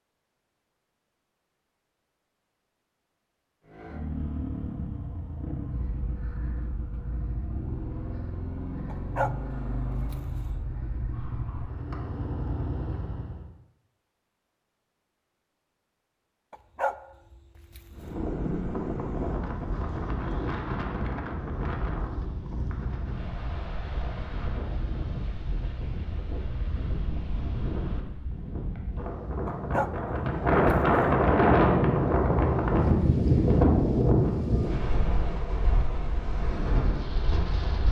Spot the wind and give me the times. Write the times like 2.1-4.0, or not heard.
17.9-37.8.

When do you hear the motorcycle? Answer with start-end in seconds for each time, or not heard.
3.6-13.4.